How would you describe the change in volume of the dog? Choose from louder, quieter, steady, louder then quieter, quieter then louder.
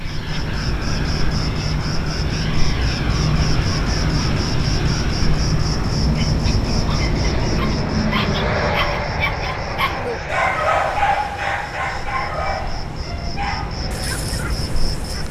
louder then quieter.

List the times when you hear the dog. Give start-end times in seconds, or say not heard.
6.2-15.2.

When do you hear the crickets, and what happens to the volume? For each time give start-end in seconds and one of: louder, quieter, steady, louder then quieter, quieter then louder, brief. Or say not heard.
0.0-15.2 quieter then louder.